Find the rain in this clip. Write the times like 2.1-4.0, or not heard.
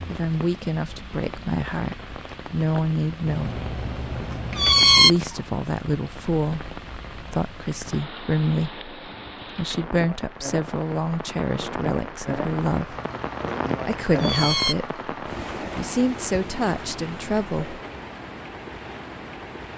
0.0-19.7.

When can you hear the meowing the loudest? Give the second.
5 s.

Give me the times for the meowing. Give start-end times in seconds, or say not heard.
3.2-5.1, 12.8-14.8.